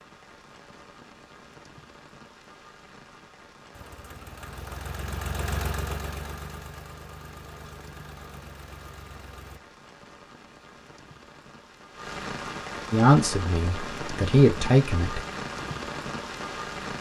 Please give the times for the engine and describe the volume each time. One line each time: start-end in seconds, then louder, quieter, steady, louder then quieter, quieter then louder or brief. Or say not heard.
3.7-9.6 louder then quieter.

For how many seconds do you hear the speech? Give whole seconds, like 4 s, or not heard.
2 s.